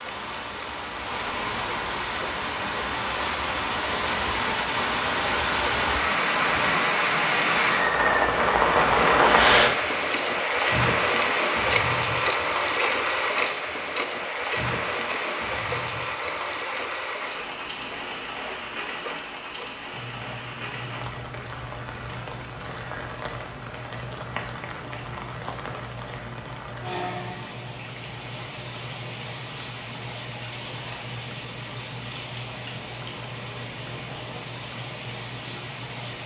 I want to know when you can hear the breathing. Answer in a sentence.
You can hear the breathing from 9.1 to 9.8 s.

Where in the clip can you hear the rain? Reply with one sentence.
You can hear the rain from 0.0 to 36.2 s.